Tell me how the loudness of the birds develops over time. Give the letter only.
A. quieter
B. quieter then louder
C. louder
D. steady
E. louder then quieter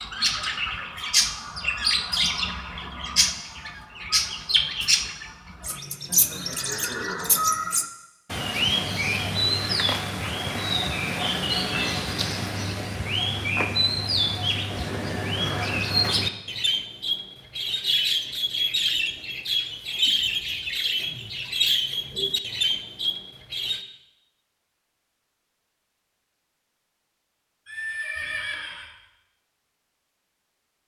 D.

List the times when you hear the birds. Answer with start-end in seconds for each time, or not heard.
0.0-23.8.